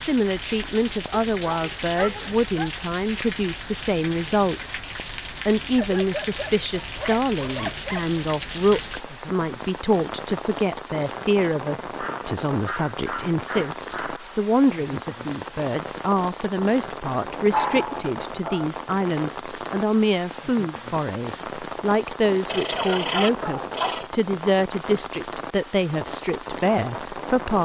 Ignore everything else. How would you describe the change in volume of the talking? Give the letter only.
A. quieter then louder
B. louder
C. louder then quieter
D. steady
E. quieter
D.